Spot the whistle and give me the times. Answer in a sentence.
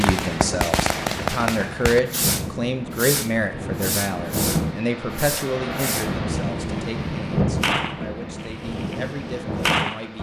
The whistle can't be heard in this clip.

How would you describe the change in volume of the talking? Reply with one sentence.
The loudness of the talking goes down.